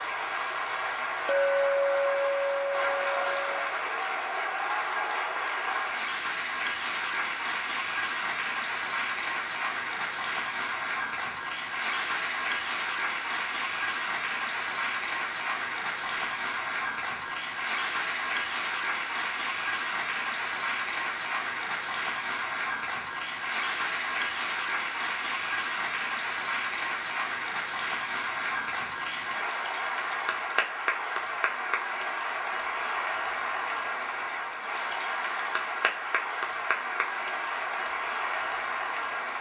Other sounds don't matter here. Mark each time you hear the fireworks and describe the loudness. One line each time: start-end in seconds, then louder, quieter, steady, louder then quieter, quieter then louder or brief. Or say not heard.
not heard.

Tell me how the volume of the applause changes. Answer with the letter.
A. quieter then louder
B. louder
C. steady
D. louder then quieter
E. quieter
C.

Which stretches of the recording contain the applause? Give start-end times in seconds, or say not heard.
0.0-39.3.